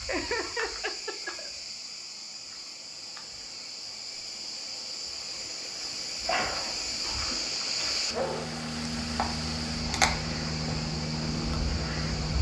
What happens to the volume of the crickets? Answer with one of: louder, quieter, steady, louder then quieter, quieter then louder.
louder.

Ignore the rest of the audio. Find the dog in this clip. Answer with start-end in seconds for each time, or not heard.
6.2-8.5.